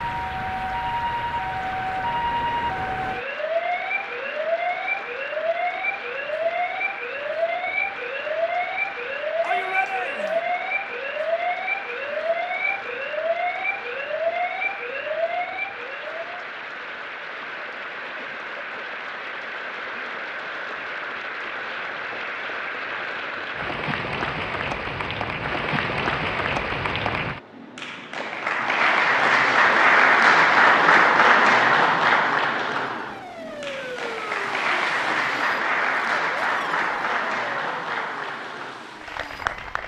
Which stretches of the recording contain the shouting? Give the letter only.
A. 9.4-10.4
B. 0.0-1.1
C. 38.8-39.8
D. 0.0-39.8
A.